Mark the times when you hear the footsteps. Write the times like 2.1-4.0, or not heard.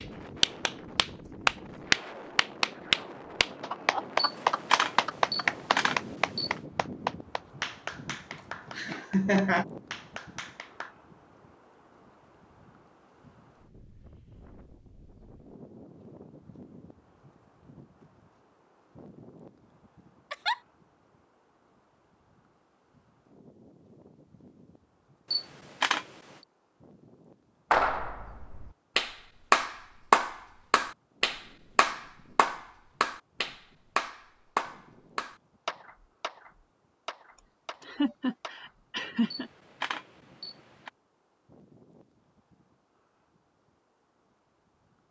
not heard.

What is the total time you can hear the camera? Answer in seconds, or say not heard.
5 s.